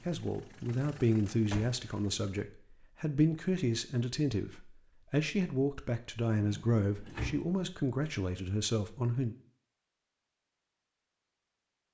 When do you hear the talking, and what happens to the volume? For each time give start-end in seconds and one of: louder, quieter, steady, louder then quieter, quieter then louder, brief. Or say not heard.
0.1-9.3 steady.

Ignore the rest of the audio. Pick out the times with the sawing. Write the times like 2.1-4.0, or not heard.
not heard.